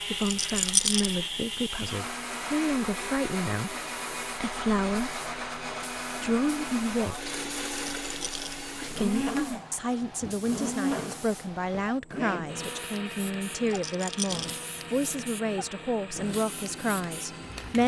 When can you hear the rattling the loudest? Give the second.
1 s.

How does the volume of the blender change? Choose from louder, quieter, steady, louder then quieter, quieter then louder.
quieter.